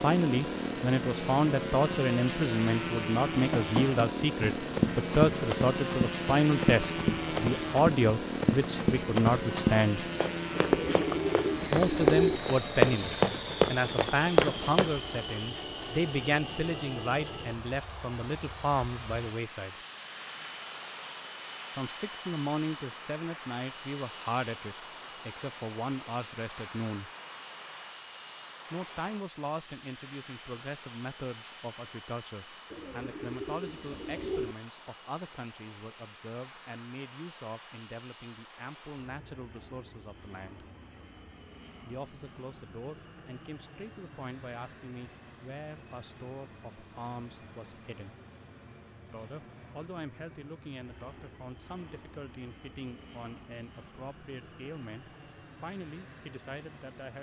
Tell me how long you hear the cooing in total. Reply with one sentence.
The cooing can be heard for 4 seconds in total.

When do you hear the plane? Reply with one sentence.
You can hear the plane from 0.0 to 57.1 s.